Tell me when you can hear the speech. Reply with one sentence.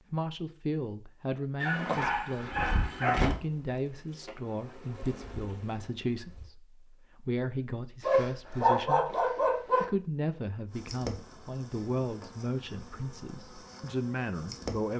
The speech can be heard from 0.1 to 14.9 s.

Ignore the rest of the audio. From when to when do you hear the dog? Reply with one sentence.
The dog can be heard from 1.6 to 3.4 s and from 8.0 to 9.8 s.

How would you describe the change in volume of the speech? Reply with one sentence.
The loudness of the speech stays about the same.